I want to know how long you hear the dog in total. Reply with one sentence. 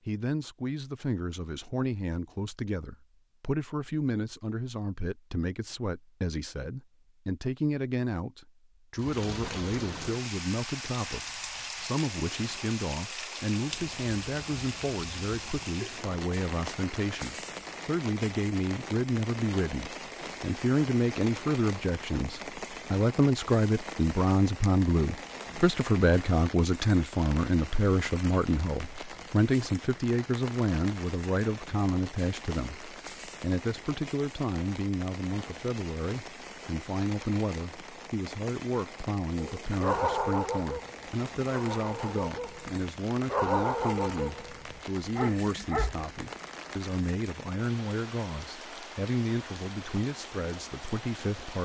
The dog can be heard for 7 seconds in total.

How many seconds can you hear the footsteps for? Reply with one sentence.
The footsteps can't be heard in this clip.